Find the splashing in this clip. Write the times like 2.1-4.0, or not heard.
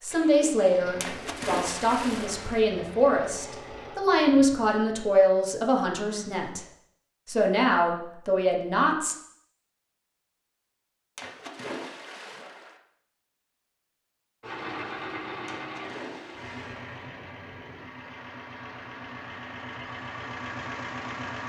1.0-2.6, 11.2-12.8, 15.4-16.9.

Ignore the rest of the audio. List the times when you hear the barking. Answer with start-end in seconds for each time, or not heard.
not heard.